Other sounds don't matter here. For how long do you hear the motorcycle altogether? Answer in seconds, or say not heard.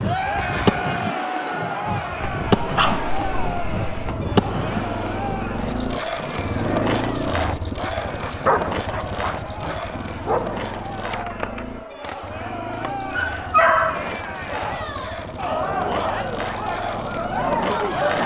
15 s.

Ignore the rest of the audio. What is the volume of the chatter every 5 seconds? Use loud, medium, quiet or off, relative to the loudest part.
loud, medium, medium, loud.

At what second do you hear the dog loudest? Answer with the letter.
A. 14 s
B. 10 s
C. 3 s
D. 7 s
A.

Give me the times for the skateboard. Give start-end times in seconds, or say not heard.
0.0-18.2.